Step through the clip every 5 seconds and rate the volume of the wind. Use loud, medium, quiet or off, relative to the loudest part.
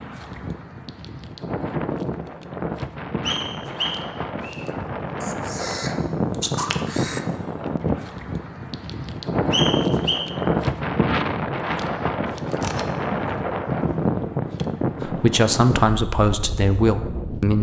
medium, loud, loud, medium.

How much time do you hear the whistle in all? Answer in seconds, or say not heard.
2 s.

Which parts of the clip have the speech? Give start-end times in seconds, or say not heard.
15.0-17.5.